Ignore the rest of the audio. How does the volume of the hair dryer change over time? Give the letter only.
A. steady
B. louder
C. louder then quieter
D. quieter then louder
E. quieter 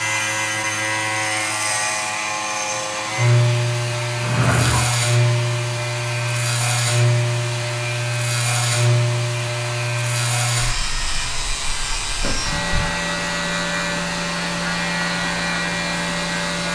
A.